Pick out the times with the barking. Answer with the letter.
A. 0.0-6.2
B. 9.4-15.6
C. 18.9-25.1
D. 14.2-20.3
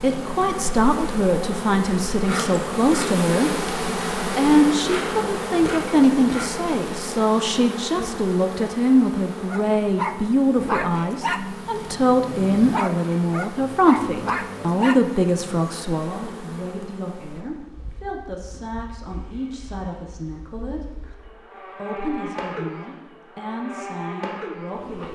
B.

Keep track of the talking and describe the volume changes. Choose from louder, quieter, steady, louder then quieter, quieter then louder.
quieter.